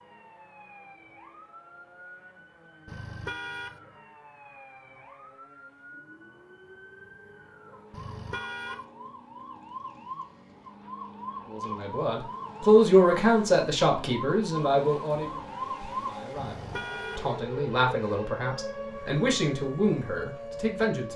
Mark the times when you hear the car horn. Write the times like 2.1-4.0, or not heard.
2.9-3.8, 7.9-8.8, 16.4-17.2.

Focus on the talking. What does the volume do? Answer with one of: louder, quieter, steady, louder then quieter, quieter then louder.
quieter then louder.